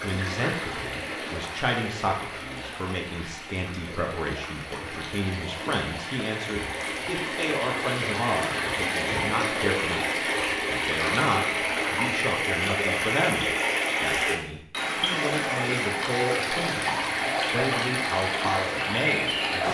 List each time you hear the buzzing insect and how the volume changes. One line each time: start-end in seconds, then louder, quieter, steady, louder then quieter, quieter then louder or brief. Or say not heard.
not heard.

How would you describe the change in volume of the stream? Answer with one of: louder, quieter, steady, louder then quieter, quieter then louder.
louder.